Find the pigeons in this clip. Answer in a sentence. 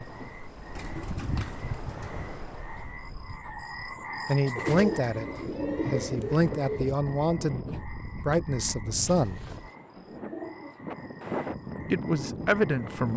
You can hear the pigeons from 0.8 to 2.3 s, from 4.5 to 7.0 s and from 9.1 to 10.8 s.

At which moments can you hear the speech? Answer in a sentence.
You can hear the speech from 4.2 to 5.2 s, from 5.9 to 9.4 s and from 11.9 to 13.1 s.